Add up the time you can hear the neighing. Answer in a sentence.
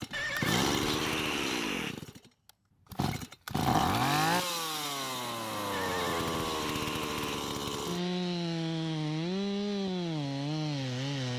The neighing can be heard for 4 seconds in total.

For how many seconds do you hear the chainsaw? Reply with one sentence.
You can hear the chainsaw for 11 seconds altogether.